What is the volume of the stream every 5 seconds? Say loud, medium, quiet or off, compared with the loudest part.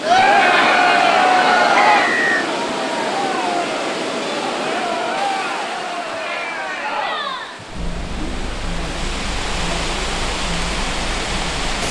loud, medium, loud.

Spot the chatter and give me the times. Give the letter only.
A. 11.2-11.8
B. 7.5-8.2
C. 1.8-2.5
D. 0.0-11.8
D.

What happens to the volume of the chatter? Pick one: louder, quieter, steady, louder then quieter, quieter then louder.
quieter.